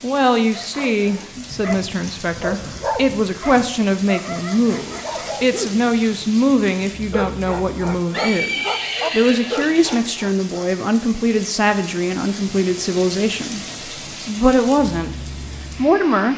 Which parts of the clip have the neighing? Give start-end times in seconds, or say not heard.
8.1-10.0.